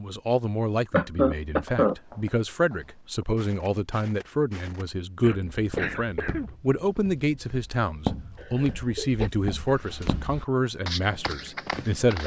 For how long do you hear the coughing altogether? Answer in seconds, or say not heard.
3 s.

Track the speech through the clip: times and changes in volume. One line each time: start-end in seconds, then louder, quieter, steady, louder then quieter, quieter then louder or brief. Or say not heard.
0.0-12.2 steady.